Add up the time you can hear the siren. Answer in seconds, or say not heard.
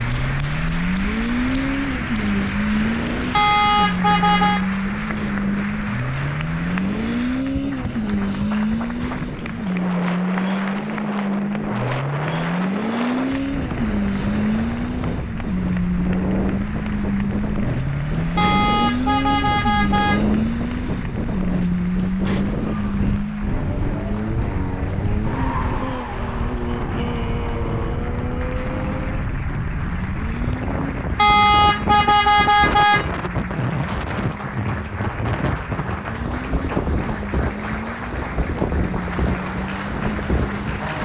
not heard.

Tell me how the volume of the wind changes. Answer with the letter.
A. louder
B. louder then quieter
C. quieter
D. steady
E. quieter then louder
A.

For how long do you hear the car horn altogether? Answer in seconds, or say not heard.
5 s.